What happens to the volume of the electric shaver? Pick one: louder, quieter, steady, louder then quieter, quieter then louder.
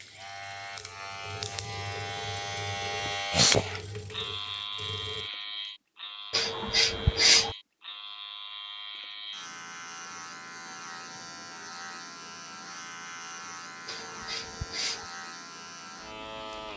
quieter.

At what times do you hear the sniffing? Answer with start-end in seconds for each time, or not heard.
3.0-3.6, 6.3-7.5, 13.8-15.1.